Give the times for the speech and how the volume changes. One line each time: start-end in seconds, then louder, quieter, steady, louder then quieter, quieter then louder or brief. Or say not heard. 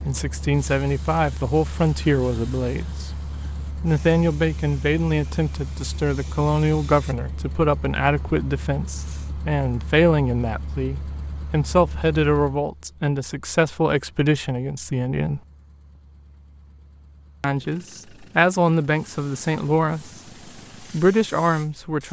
0.0-15.4 steady
17.4-20.2 brief
20.8-22.0 brief.